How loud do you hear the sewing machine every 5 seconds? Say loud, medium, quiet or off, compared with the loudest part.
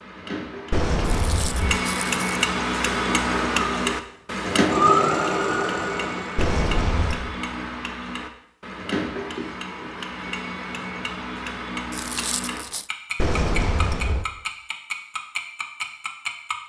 loud, loud, off, off.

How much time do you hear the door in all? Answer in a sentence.
The door can be heard for 3 seconds in total.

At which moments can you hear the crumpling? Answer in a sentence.
The crumpling can be heard from 1.1 to 2.2 s and from 11.9 to 12.9 s.